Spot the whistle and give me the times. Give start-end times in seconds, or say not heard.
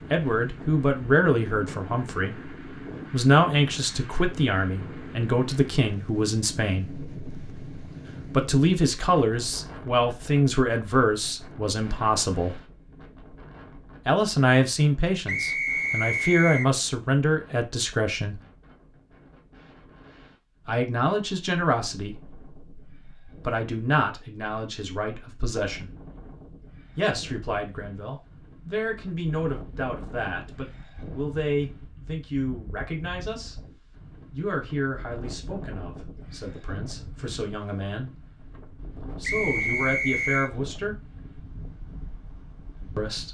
15.2-16.7, 39.2-40.5.